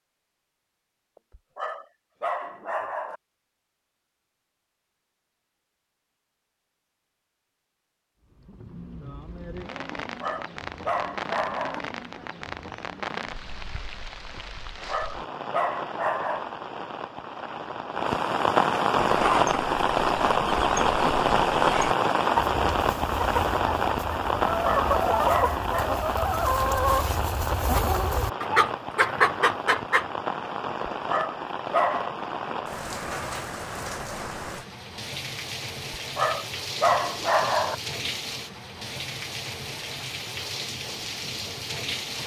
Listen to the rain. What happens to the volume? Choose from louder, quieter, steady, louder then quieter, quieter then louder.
louder then quieter.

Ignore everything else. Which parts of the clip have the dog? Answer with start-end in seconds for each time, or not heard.
1.3-3.2, 10.2-11.8, 14.8-16.4, 24.6-25.9, 31.1-32.1, 36.1-37.8.